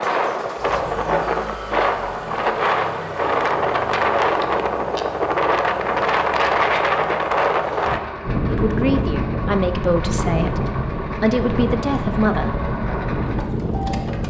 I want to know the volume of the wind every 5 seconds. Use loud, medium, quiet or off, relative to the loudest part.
loud, loud, medium.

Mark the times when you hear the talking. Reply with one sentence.
The talking can be heard from 8.4 to 12.7 s.